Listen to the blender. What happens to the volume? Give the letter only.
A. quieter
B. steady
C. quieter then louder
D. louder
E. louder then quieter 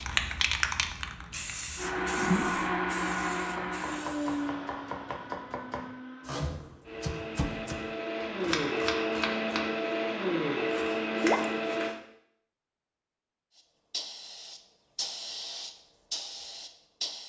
C.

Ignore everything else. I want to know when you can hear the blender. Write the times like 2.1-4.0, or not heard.
1.8-11.9.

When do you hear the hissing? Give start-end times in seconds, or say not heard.
0.0-4.5, 13.6-17.2.